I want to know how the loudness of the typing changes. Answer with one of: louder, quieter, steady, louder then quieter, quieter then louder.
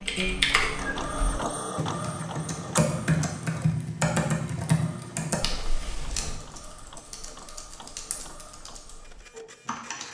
quieter.